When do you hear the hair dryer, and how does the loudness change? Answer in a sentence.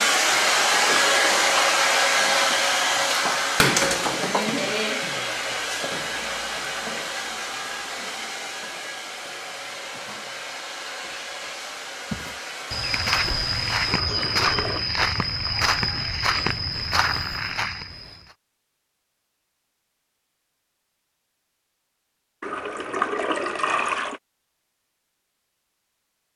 You can hear the hair dryer from 0.0 to 14.1 s, getting quieter.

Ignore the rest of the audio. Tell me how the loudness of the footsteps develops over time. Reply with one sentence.
The volume of the footsteps stays about the same.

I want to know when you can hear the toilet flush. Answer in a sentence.
You can hear the toilet flush from 0.5 to 1.8 s, from 13.8 to 14.8 s and from 22.4 to 24.2 s.